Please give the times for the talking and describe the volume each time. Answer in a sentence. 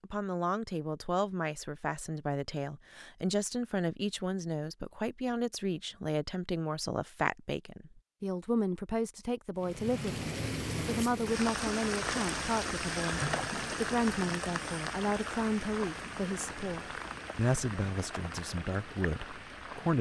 You can hear the talking from 0.0 to 19.9 s, at a steady volume.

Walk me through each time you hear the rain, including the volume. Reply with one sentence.
The rain can be heard from 9.6 to 19.9 s, getting quieter.